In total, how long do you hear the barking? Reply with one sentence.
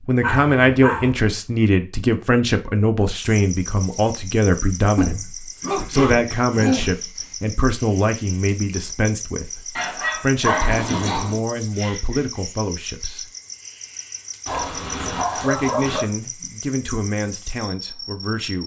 You can hear the barking for 6 seconds altogether.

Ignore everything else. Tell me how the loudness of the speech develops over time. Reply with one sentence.
The loudness of the speech goes down.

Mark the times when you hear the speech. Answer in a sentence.
You can hear the speech from 0.1 to 13.3 s and from 15.3 to 18.6 s.